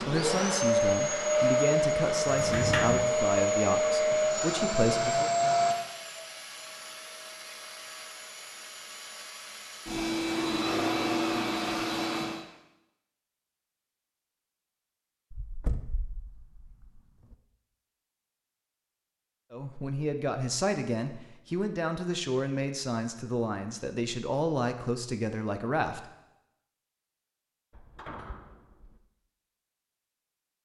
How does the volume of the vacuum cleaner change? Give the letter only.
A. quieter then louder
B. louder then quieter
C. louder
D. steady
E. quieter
A.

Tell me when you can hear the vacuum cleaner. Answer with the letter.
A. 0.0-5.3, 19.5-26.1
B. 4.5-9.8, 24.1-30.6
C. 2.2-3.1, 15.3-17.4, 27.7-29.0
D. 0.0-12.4
D.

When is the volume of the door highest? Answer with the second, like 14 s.
3 s.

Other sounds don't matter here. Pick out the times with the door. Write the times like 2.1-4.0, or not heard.
2.2-3.1, 15.3-17.4, 27.7-29.0.